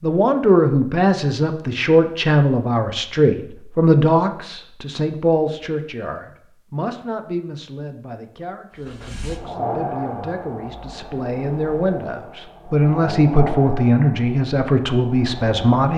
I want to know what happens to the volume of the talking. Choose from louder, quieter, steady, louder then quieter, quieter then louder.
quieter then louder.